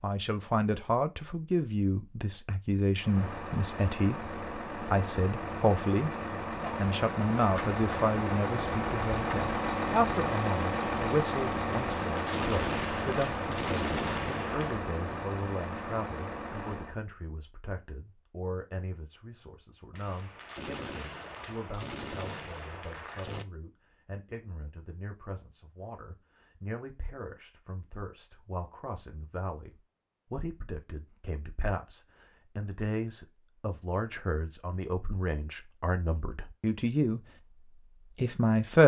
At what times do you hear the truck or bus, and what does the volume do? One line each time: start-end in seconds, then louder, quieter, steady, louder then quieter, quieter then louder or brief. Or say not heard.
3.0-17.0 louder then quieter.